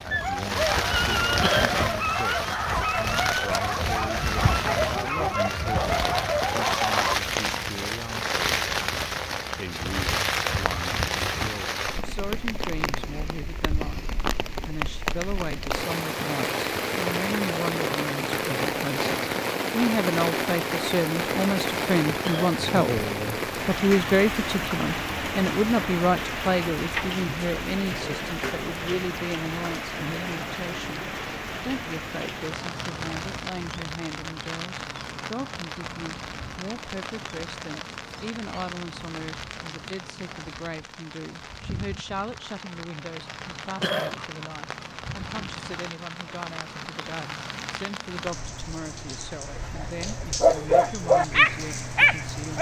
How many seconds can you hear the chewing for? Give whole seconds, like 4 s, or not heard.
not heard.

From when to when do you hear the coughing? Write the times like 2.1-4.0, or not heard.
1.4-1.8, 22.2-22.6, 43.8-44.2.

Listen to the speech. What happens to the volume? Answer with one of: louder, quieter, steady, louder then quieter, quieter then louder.
louder then quieter.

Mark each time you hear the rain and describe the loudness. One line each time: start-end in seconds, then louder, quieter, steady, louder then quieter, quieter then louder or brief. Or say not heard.
0.0-52.5 quieter.